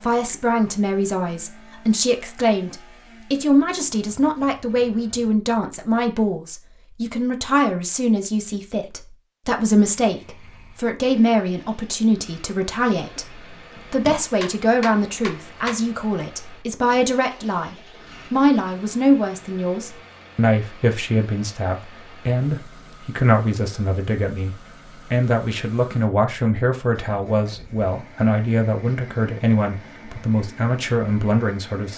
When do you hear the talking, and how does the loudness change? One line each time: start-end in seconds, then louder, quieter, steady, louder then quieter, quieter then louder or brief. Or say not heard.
0.0-31.9 steady.